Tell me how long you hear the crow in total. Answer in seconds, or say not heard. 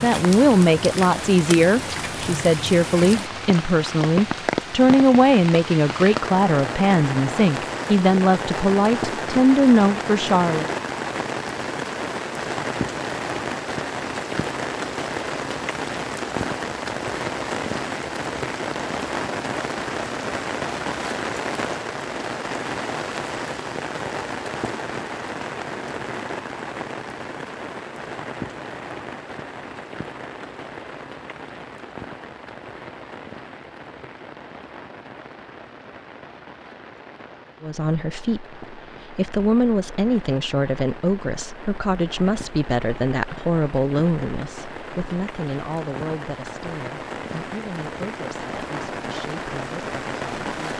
not heard.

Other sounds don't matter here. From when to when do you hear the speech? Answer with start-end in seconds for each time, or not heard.
0.0-10.7, 37.6-50.7.